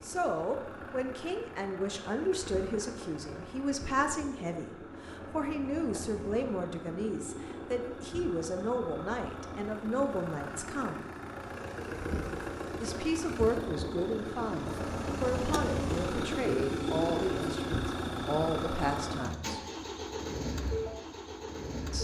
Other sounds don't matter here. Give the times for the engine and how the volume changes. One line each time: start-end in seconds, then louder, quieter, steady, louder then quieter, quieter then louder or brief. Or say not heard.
0.0-21.9 louder.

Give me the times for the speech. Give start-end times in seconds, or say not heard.
0.0-11.1, 12.8-19.6.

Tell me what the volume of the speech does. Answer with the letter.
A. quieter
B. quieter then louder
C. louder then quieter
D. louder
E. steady
E.